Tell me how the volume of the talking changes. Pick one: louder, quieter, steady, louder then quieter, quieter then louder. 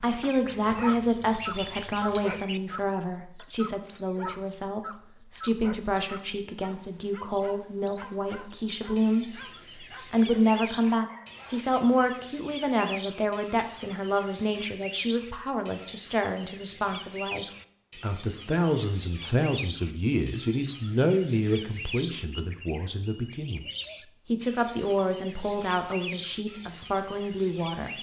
steady.